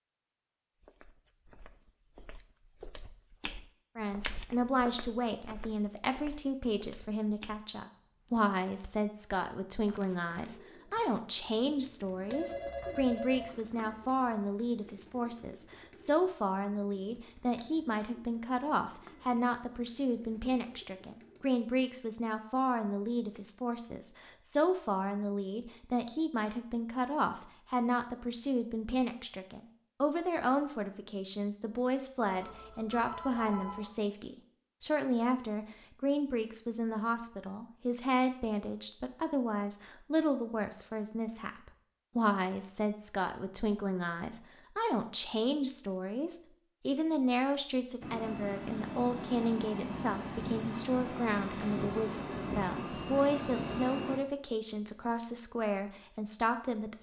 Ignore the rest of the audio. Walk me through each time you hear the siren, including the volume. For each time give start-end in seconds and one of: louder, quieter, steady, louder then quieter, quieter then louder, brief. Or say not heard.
not heard.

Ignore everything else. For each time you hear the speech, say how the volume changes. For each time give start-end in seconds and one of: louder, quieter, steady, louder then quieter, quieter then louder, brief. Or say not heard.
4.0-56.9 steady.